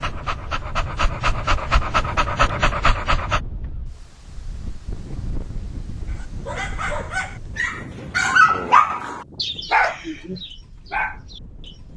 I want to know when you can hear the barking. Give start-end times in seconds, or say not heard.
0.0-3.4, 6.1-11.8.